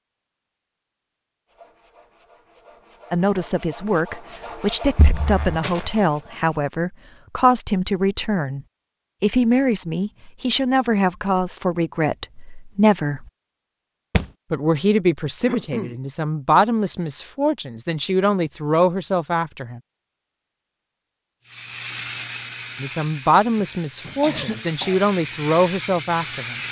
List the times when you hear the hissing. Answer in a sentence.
The hissing can be heard from 21.4 to 26.6 s.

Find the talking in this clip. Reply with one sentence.
The talking can be heard from 3.1 to 13.3 s, from 14.5 to 19.8 s and from 22.8 to 26.6 s.